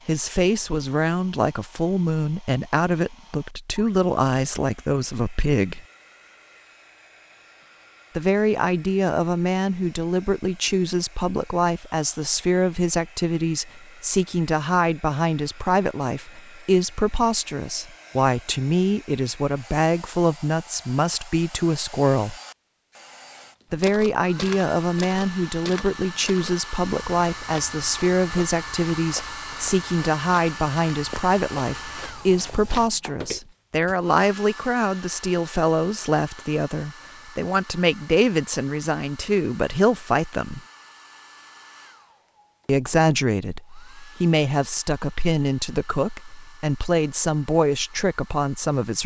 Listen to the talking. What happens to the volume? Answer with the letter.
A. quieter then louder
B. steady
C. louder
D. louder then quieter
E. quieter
B.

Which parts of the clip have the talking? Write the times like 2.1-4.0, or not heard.
0.1-5.8, 8.2-22.4, 23.7-40.6, 42.6-49.0.